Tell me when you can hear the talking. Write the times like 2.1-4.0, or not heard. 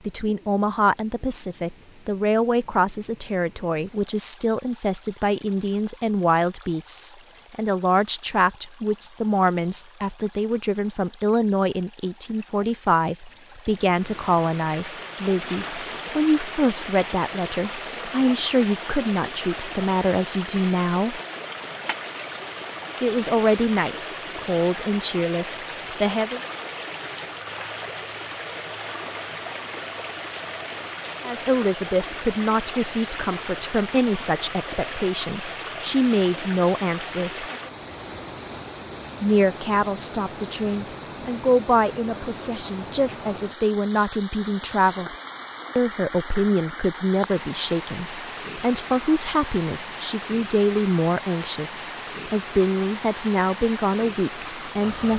0.1-21.2, 23.0-26.4, 31.2-37.5, 39.2-45.1, 45.8-55.1.